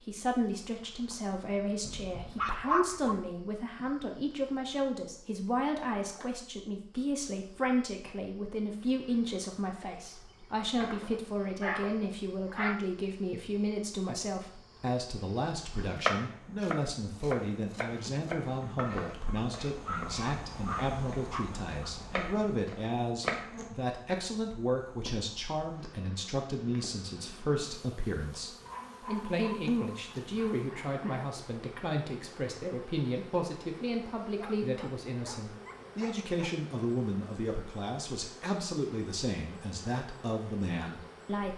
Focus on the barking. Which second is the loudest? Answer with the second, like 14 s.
3 s.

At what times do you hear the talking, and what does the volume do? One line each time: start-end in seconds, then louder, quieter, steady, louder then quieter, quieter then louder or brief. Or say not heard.
0.0-41.5 steady.